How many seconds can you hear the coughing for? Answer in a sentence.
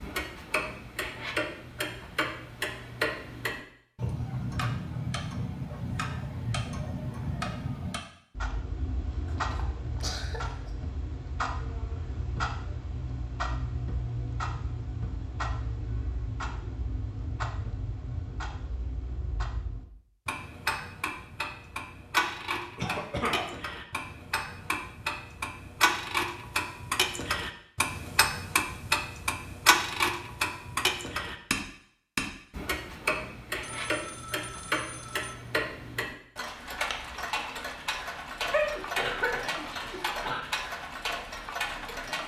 The coughing can be heard for 4 seconds in total.